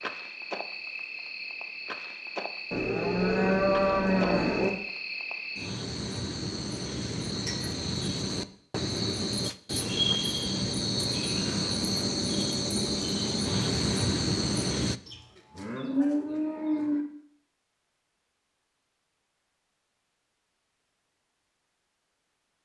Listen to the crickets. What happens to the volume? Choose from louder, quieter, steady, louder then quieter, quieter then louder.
louder.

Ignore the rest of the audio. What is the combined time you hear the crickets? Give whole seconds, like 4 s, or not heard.
15 s.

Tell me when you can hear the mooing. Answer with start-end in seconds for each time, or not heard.
2.7-4.7, 15.1-17.1.